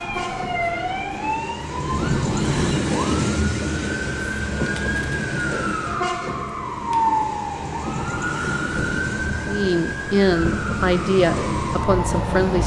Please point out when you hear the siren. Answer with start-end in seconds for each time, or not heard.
0.0-12.6.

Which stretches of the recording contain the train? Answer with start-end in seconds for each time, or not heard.
0.0-12.6.